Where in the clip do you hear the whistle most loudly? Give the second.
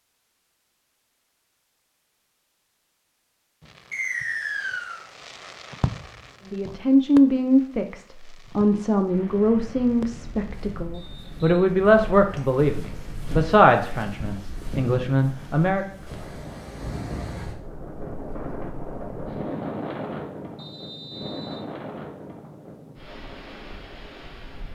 4 s.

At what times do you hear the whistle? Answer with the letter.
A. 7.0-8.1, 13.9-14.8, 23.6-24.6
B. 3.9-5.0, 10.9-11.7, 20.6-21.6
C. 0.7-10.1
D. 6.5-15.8
B.